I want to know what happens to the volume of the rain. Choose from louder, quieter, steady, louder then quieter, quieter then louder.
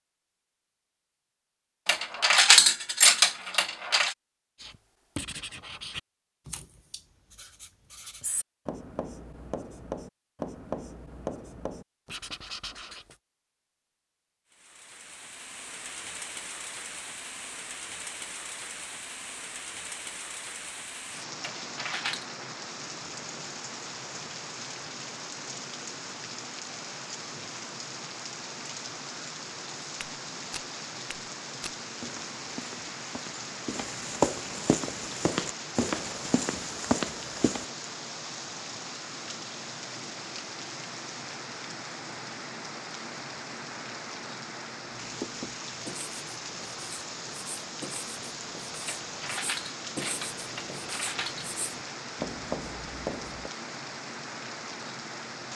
steady.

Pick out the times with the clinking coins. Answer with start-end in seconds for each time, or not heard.
1.9-4.2, 21.4-22.2, 48.9-51.5.